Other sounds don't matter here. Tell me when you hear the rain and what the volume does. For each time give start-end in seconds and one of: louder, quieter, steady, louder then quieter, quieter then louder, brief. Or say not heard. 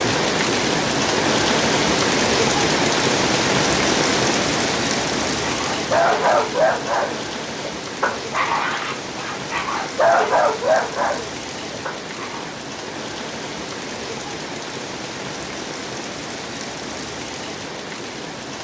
0.0-18.6 quieter.